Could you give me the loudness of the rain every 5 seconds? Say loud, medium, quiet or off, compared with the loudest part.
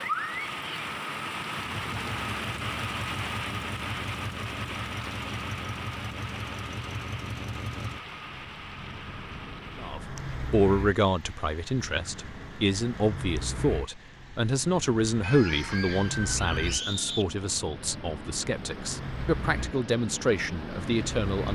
loud, medium, quiet, medium, medium.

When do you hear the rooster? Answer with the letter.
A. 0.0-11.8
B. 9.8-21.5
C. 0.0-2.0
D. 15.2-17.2
D.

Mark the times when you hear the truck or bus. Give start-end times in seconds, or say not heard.
1.4-21.5.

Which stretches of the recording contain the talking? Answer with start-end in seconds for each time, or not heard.
9.8-21.5.